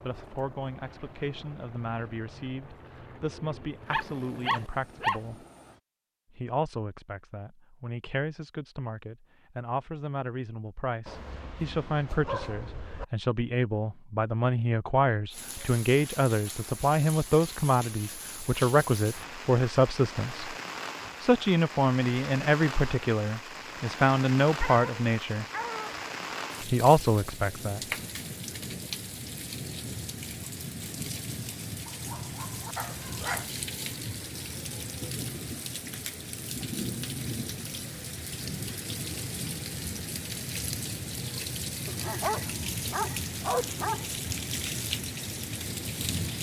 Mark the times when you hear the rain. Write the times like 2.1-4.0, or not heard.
15.3-46.3.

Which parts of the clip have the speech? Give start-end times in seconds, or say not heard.
0.0-5.5, 6.3-20.6, 21.2-25.4, 26.6-27.8.